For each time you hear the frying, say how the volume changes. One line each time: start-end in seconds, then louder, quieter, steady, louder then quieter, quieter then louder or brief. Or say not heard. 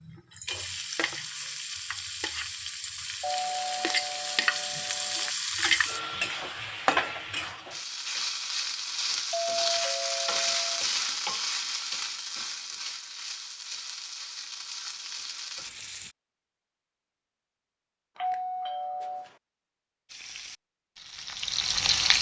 0.0-16.1 louder then quieter
20.1-22.1 brief.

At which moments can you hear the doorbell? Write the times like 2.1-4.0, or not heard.
3.2-5.3, 9.3-10.8, 18.1-19.4.